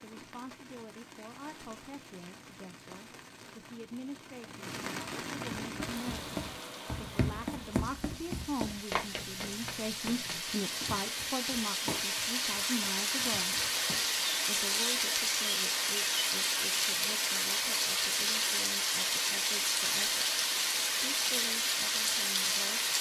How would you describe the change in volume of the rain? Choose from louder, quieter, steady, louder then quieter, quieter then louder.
louder.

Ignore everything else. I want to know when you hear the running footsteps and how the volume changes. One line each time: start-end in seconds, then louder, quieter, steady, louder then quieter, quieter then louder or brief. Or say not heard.
5.7-14.2 quieter.